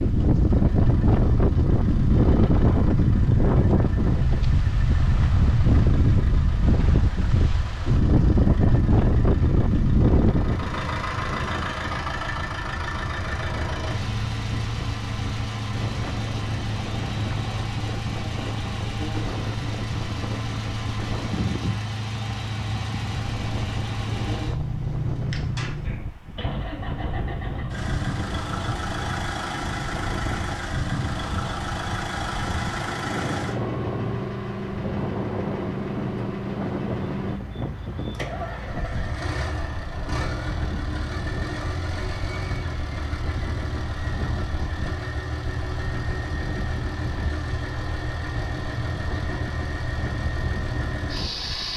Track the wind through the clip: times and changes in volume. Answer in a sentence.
The wind can be heard from 0.0 to 51.7 s, getting quieter.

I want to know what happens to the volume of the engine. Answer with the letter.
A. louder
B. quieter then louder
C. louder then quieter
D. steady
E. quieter
A.